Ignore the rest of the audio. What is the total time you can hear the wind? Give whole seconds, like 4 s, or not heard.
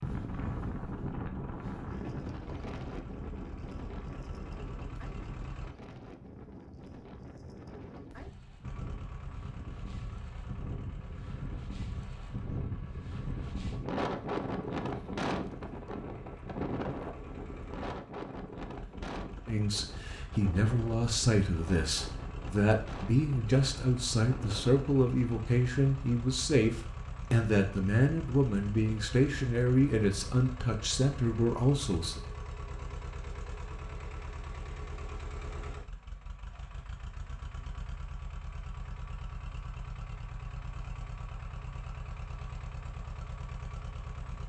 25 s.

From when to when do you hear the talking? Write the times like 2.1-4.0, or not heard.
19.4-32.2.